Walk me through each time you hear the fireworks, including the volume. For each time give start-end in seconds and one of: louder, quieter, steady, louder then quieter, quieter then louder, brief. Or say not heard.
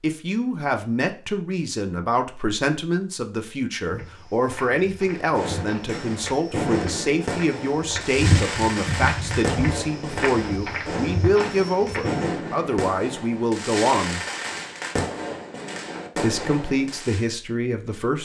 5.2-17.2 steady.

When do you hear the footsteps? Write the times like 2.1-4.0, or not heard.
3.8-12.2.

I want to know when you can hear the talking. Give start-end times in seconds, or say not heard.
0.0-14.2, 16.2-18.2.